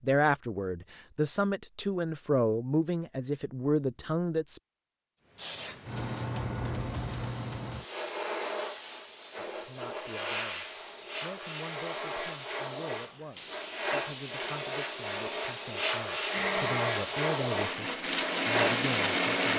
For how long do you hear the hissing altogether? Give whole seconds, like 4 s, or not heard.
14 s.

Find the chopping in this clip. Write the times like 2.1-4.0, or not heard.
not heard.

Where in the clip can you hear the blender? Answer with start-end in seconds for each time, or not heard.
16.3-19.5.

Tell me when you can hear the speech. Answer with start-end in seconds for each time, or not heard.
0.0-4.6, 9.3-19.5.